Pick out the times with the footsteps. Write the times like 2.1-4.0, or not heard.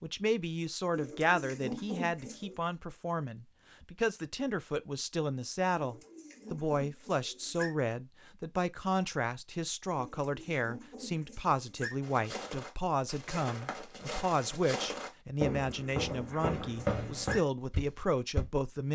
12.0-18.4.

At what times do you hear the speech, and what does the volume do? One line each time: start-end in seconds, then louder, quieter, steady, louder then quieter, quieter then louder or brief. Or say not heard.
0.0-18.9 steady.